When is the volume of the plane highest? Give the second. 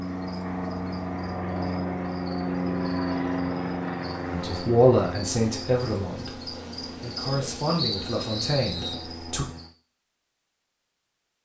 3 s.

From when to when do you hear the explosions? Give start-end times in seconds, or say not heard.
not heard.